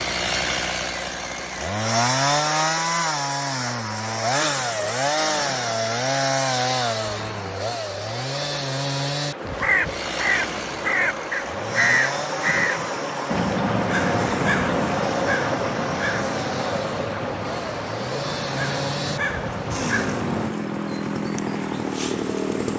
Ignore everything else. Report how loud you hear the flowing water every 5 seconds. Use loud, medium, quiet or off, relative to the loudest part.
medium, medium, loud, loud, medium.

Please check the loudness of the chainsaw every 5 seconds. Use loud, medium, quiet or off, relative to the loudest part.
loud, loud, medium, medium, loud.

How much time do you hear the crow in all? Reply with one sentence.
You can hear the crow for 11 seconds altogether.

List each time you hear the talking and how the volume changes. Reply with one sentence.
You can't hear the talking here.